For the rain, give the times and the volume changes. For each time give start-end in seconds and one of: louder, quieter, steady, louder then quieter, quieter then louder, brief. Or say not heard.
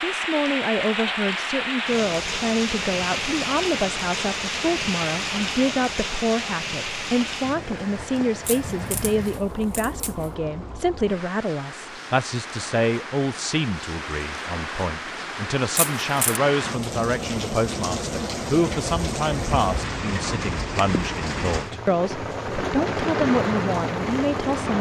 0.0-24.7 quieter then louder.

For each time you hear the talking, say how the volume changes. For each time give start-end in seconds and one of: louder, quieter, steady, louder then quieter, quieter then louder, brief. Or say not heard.
0.0-24.7 steady.